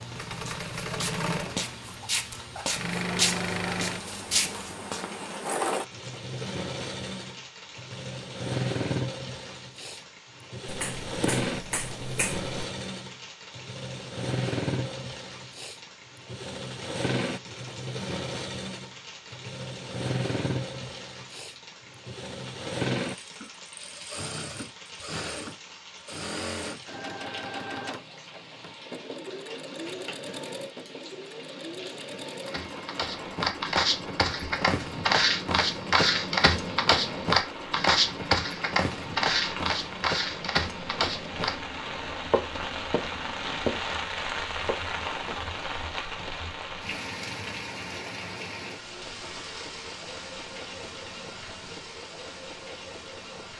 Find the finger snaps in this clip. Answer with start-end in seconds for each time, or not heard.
10.7-12.5.